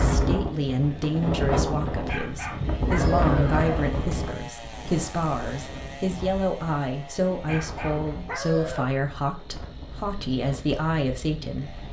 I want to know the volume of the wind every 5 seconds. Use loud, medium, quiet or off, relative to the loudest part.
loud, quiet, quiet.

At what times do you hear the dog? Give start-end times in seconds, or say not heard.
1.9-3.9, 7.3-8.9.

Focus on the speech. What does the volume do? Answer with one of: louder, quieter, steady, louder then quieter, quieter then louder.
steady.